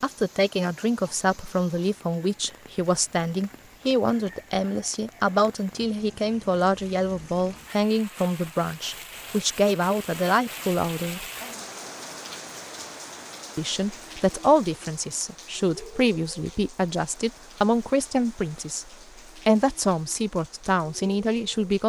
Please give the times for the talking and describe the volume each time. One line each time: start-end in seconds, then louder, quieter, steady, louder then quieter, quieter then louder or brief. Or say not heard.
0.0-11.2 steady
13.6-21.8 steady.